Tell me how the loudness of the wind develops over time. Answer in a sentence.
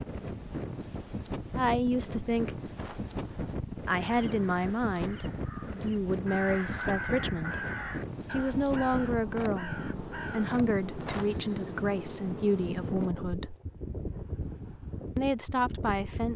The loudness of the wind stays about the same.